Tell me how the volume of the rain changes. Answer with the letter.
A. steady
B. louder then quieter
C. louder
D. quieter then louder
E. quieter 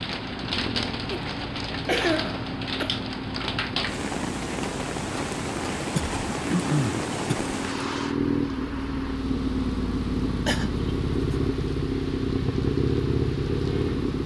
E.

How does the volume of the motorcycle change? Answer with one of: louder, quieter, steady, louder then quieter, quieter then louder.
louder.